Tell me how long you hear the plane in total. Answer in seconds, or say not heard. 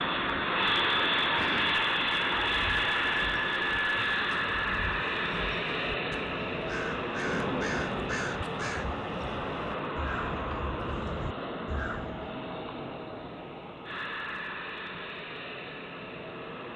17 s.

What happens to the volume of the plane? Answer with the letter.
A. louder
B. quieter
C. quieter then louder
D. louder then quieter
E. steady
B.